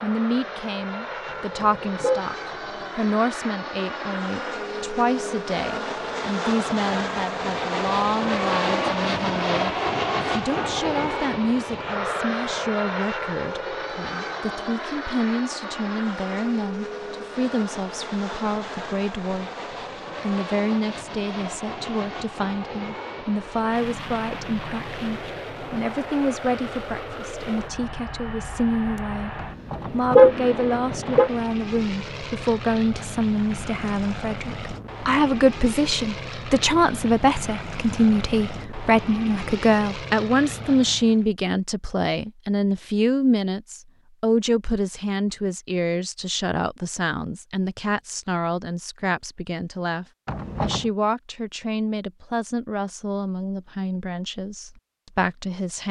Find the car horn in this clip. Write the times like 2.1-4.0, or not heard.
1.2-2.2, 29.4-31.3, 50.2-50.9.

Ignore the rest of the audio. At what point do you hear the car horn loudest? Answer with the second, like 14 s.
30 s.